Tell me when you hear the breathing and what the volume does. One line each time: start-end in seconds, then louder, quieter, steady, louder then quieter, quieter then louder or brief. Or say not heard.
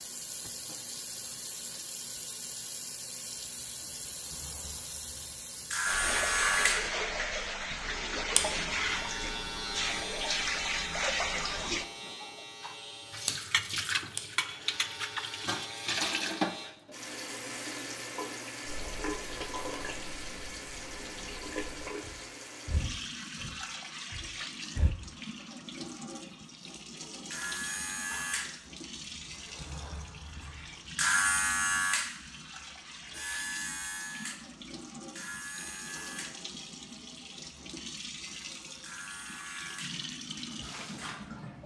18.6-24.9 louder then quieter.